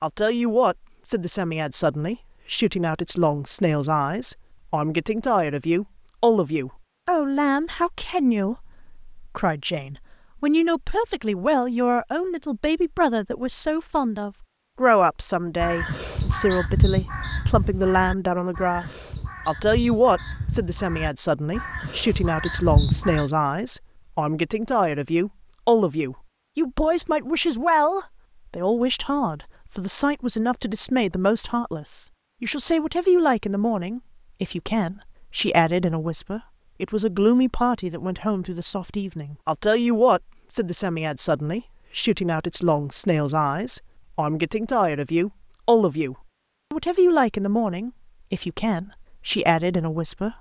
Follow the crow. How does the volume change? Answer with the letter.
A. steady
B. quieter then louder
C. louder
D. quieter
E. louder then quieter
B.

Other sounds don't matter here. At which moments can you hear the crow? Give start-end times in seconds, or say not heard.
15.6-23.2.